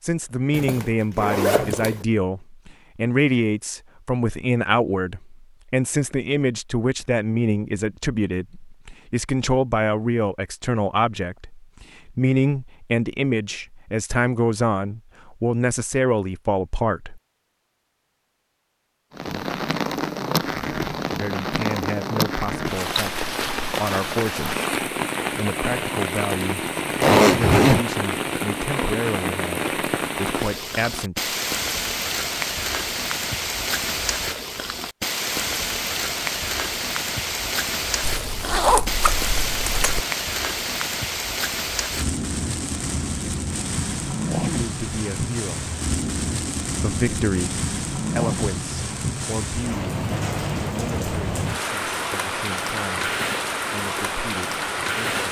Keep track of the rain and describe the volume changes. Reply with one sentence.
The loudness of the rain stays about the same.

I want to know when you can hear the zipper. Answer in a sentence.
You can hear the zipper from 0.5 to 1.9 s, from 27.0 to 27.9 s and from 38.0 to 40.0 s.